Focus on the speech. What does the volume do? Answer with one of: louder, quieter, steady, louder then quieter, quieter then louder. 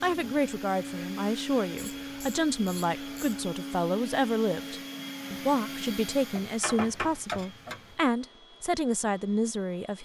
steady.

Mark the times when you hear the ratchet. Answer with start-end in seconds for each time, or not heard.
1.8-3.5, 6.3-8.0.